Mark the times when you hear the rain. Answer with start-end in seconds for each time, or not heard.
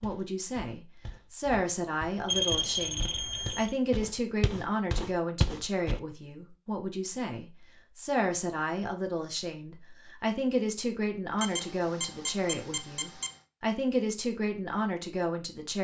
not heard.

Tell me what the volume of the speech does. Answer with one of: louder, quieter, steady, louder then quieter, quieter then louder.
steady.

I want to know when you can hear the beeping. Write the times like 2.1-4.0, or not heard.
2.2-3.8, 11.4-13.3.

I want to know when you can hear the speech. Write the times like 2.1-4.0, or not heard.
0.0-15.7.